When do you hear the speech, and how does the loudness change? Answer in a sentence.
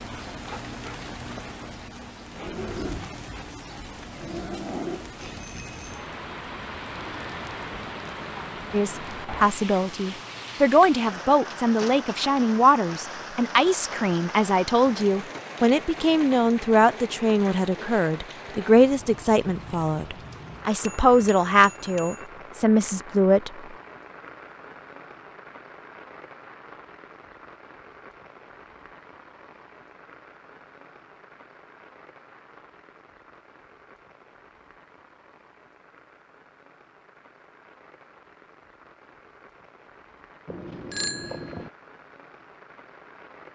The speech can be heard from 8.7 to 23.5 s, at a steady volume.